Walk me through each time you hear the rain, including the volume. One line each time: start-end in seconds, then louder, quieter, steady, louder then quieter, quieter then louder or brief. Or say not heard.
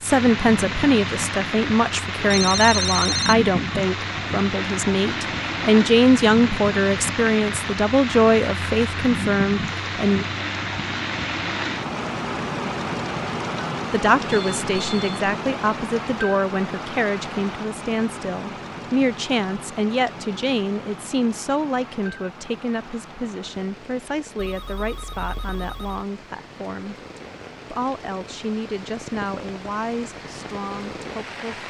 0.0-31.6 quieter.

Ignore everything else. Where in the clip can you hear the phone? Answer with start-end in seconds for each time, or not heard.
2.1-3.4, 14.3-15.2, 24.4-26.0.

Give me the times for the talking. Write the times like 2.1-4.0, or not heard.
0.0-10.2, 13.9-26.9, 27.7-31.6.